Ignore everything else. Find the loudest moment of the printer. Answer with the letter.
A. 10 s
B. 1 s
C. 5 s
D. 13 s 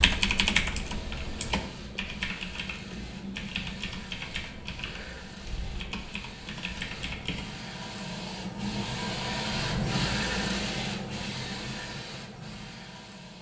A.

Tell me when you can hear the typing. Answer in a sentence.
The typing can be heard from 0.0 to 7.5 s.